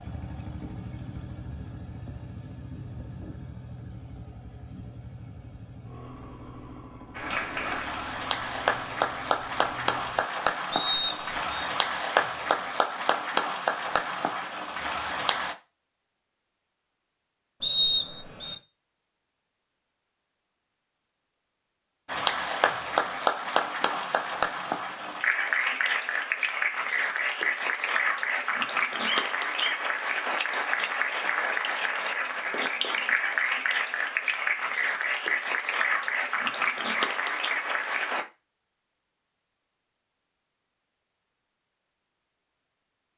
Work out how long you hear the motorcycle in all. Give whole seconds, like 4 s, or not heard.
10 s.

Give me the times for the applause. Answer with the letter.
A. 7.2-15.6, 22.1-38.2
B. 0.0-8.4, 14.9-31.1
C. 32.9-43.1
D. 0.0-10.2
A.